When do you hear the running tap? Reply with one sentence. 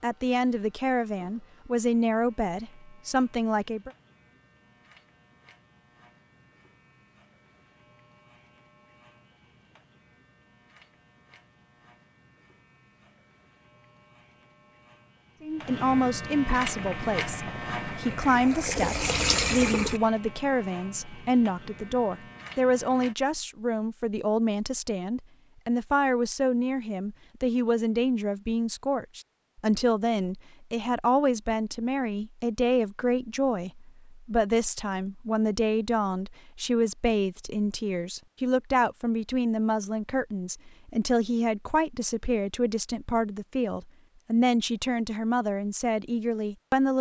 You can hear the running tap from 16.7 to 20.0 s.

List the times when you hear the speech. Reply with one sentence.
The speech can be heard from 0.0 to 3.9 s and from 15.4 to 46.9 s.